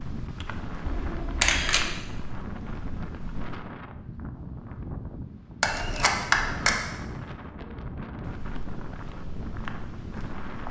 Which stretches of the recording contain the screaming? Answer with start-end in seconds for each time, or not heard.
not heard.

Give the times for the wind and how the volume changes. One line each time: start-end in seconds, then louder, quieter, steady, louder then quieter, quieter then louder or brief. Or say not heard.
0.0-10.6 steady.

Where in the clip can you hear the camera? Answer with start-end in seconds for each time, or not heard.
0.8-1.9, 5.6-6.9.